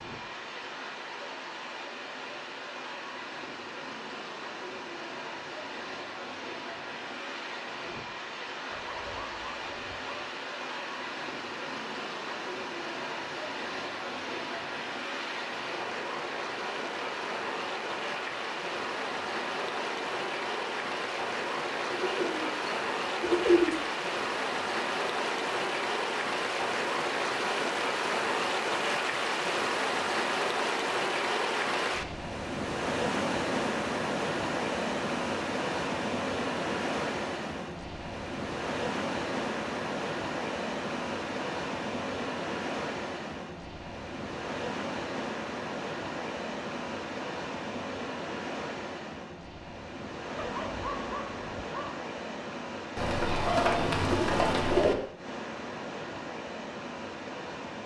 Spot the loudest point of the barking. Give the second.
51 s.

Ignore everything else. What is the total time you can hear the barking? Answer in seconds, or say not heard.
3 s.